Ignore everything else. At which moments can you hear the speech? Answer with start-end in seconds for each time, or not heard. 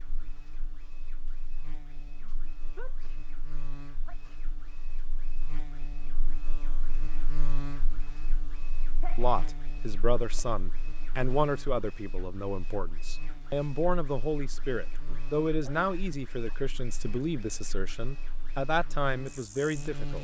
9.2-20.1.